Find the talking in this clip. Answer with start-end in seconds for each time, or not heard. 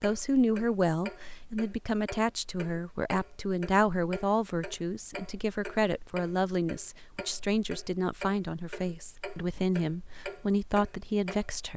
0.0-11.7.